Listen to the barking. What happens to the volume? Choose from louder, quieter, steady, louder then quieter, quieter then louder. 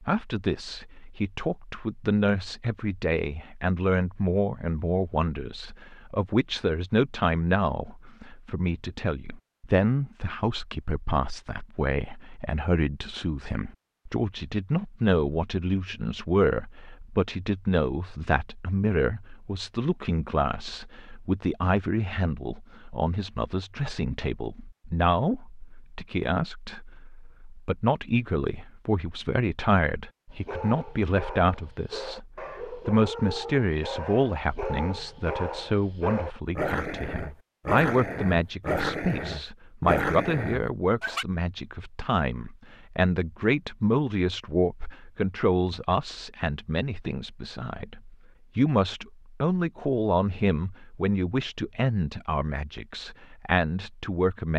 louder.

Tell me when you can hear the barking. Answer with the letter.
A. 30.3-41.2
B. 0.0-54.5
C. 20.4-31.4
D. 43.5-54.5
A.